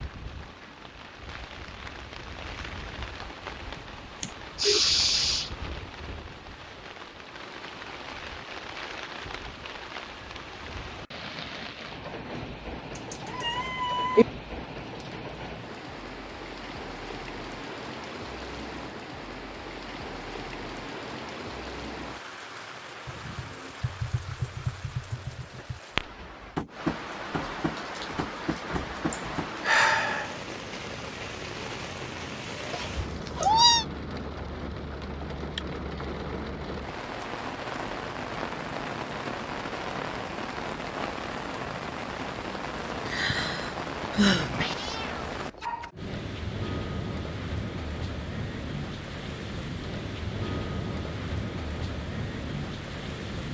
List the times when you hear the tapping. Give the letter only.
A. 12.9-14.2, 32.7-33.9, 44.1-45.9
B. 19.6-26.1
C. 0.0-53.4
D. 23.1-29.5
D.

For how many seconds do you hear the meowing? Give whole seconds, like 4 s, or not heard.
4 s.